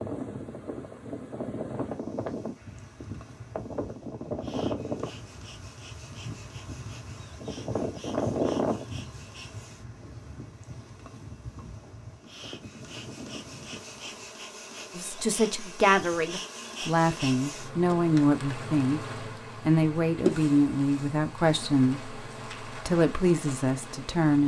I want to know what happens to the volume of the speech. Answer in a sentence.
The loudness of the speech stays about the same.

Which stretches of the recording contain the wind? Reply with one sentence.
You can hear the wind from 0.0 to 14.3 s.